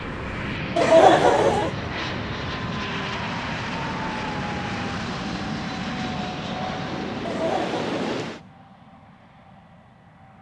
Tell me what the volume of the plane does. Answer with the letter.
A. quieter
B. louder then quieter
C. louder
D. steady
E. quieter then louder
A.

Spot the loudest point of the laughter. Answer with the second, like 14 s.
1 s.